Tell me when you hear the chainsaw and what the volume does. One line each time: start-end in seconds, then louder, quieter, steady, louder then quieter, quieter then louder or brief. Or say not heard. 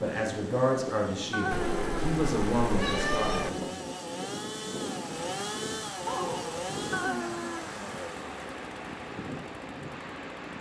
0.0-10.5 louder then quieter.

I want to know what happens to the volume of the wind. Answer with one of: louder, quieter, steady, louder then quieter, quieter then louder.
steady.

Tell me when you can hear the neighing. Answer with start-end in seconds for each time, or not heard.
1.3-2.1, 6.9-7.8.